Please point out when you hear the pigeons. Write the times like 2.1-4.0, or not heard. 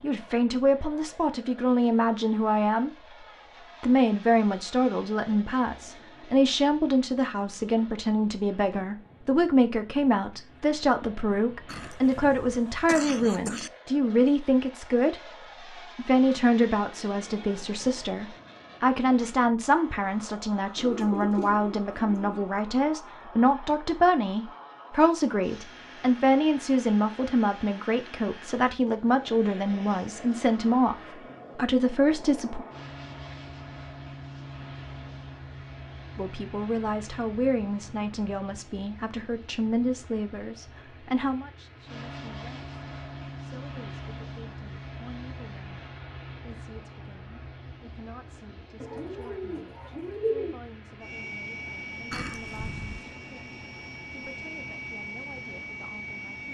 20.8-22.4, 48.8-50.6.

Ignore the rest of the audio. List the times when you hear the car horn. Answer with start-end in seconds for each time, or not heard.
not heard.